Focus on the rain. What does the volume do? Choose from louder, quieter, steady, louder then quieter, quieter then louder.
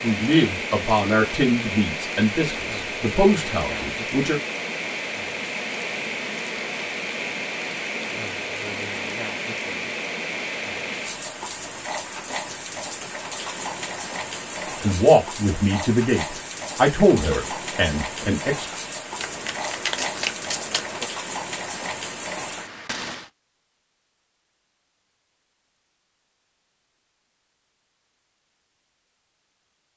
steady.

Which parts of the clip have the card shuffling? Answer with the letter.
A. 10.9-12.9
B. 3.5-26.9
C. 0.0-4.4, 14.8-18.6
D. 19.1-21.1
D.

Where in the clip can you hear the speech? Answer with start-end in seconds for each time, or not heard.
0.0-4.4, 14.8-18.6.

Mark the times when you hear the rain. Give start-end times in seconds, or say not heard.
0.0-23.3.